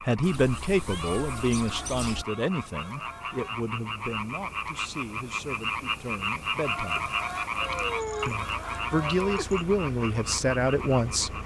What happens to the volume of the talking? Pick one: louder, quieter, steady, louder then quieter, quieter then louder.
quieter then louder.